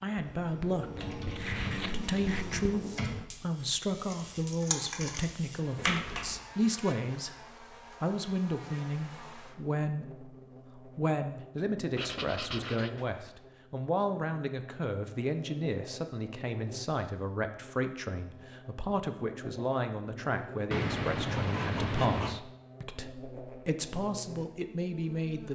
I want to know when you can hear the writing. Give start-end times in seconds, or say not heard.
0.1-2.6, 11.9-13.3, 20.7-22.4.